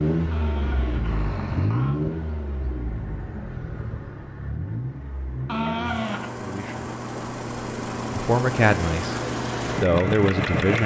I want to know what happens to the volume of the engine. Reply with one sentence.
The volume of the engine goes down, then up.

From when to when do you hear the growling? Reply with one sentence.
You can hear the growling from 0.3 to 2.0 s and from 5.5 to 6.3 s.